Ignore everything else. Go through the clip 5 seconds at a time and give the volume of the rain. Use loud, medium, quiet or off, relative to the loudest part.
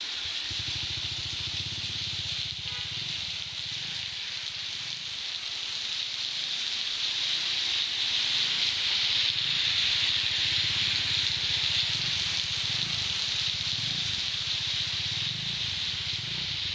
medium, loud, loud, loud.